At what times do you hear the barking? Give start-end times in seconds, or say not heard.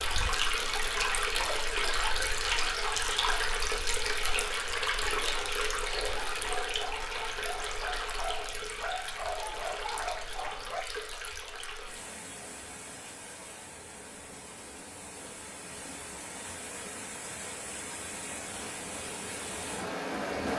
5.8-10.8.